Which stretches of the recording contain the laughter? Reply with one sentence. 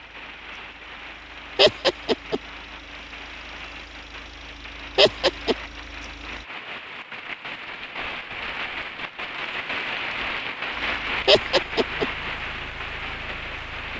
The laughter can be heard from 1.6 to 2.4 s, from 5.0 to 5.5 s and from 11.2 to 12.1 s.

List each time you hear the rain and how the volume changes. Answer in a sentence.
The rain can be heard from 0.0 to 13.9 s, getting louder.